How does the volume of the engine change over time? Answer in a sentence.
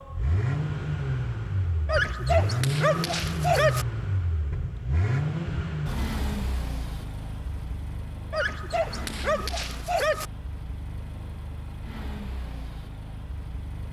The volume of the engine goes down.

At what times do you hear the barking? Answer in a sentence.
You can hear the barking from 1.9 to 3.9 s and from 8.3 to 10.2 s.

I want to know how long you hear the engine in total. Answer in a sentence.
You can hear the engine for 14 seconds altogether.